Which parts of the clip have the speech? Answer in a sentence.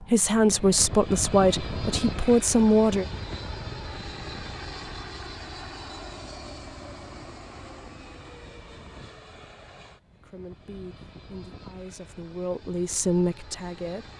The speech can be heard from 0.0 to 3.0 s and from 10.2 to 14.1 s.